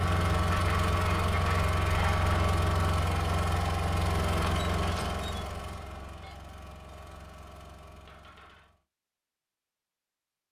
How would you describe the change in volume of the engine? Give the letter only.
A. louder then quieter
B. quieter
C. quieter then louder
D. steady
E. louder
B.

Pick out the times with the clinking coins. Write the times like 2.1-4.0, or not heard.
0.5-2.3, 8.1-8.7.